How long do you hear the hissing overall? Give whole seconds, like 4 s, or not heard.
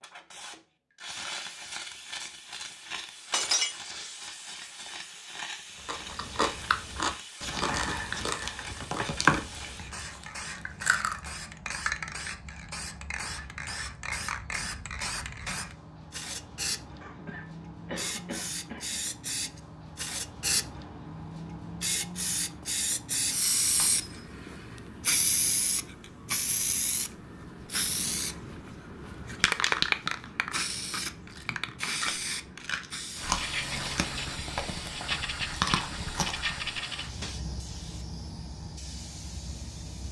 40 s.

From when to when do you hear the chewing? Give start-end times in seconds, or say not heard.
5.8-11.2, 31.3-36.7.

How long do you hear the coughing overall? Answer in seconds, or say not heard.
2 s.